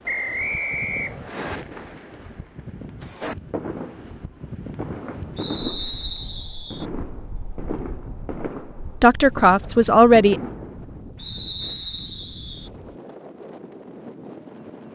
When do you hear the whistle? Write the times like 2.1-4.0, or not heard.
0.1-1.6, 5.3-6.8, 11.2-12.7.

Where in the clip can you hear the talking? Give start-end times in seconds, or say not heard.
9.0-10.4.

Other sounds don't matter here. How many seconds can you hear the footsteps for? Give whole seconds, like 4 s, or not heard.
not heard.